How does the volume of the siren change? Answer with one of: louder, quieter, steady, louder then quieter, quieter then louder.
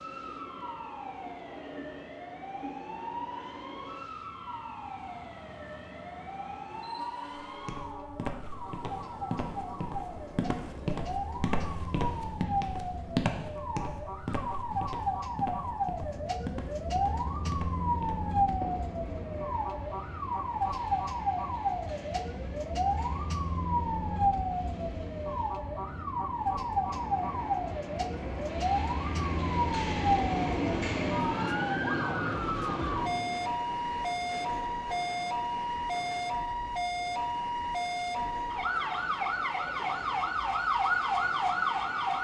louder.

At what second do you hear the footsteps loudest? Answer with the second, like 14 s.
13 s.